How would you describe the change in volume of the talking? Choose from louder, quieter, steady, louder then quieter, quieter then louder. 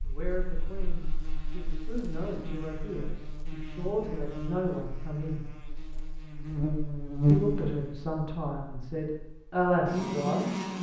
louder.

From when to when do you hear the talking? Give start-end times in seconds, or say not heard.
0.0-5.5, 7.2-10.7.